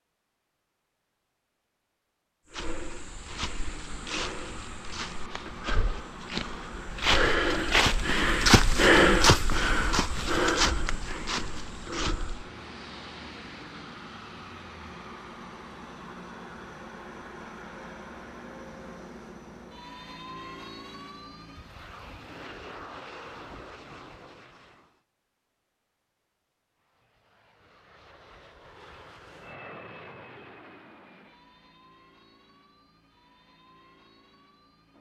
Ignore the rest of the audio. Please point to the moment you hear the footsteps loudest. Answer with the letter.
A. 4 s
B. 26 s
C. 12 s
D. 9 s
D.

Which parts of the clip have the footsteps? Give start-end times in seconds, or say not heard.
2.5-12.5.